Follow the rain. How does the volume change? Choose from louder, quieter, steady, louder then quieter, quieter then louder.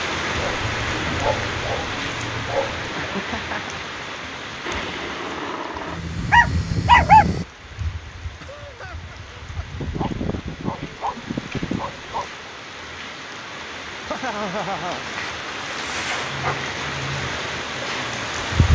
quieter then louder.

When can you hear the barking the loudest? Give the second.
7 s.